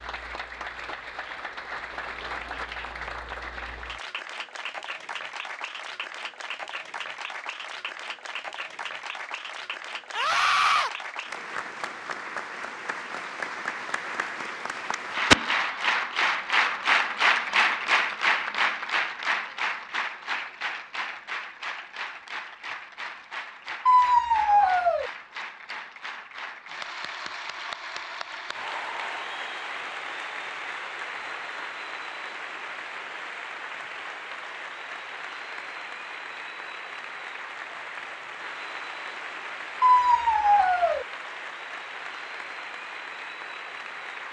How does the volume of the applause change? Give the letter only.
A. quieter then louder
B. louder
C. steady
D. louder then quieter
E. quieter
D.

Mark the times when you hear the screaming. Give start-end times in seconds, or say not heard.
10.2-10.9, 23.9-25.1, 39.8-41.0.